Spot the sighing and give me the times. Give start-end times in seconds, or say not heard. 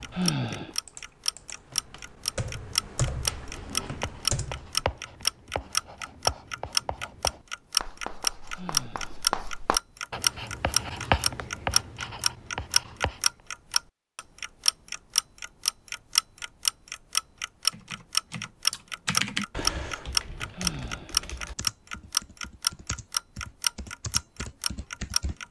0.1-0.8, 8.5-9.4, 20.5-21.5.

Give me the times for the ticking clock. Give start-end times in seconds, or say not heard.
0.0-25.4.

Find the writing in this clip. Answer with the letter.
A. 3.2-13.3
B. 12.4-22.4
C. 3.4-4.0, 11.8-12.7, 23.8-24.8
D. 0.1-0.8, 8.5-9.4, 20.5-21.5
A.